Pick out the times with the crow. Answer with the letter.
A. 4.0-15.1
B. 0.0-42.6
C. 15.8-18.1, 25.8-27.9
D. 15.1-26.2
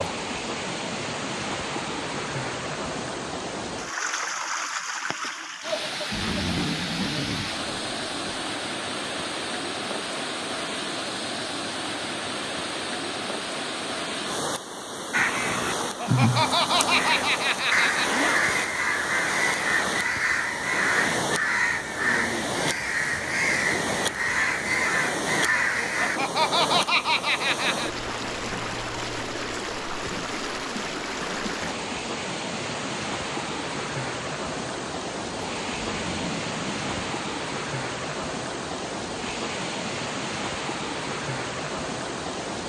D.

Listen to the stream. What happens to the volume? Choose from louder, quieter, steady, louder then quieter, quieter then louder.
steady.